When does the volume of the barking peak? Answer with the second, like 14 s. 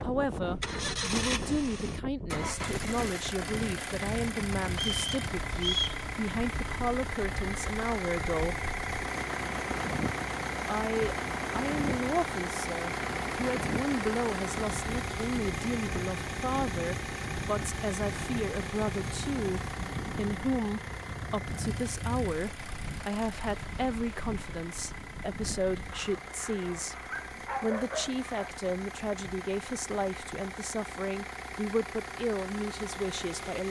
28 s.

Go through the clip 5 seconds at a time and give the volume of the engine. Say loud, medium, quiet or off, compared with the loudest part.
loud, loud, loud, loud, medium, medium, medium.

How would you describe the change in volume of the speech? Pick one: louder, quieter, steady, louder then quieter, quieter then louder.
steady.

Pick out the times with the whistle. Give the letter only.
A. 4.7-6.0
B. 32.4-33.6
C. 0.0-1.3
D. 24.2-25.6
A.